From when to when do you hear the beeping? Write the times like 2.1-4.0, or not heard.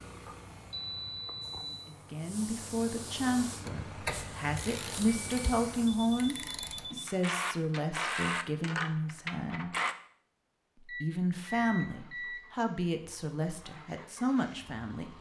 0.2-1.9, 5.0-7.1, 10.8-12.4.